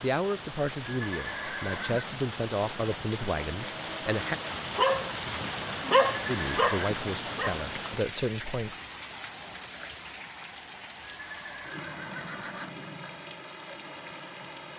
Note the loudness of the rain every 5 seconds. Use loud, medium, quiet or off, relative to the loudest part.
loud, loud, medium.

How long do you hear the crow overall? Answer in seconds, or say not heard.
not heard.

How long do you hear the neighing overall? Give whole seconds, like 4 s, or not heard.
4 s.